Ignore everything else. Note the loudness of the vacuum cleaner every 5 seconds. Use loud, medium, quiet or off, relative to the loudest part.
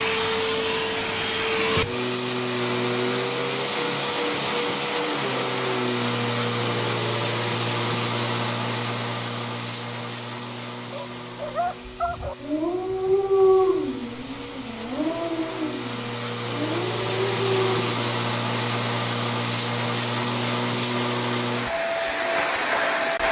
loud, loud, quiet, loud, loud.